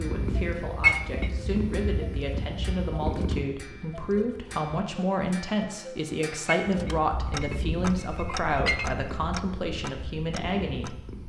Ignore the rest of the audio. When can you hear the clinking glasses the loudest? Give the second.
1 s.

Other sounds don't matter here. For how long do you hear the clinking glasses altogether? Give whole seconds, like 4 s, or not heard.
3 s.